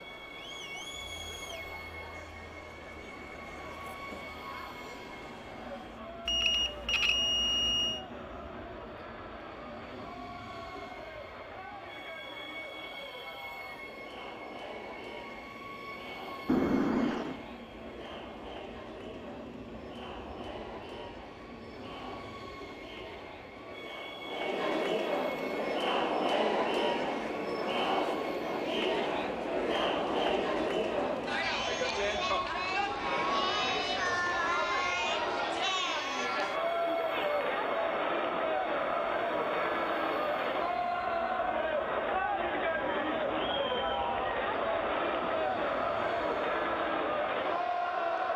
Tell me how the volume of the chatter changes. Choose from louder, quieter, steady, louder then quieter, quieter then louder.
louder.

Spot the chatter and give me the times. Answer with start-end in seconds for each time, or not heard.
0.0-48.3.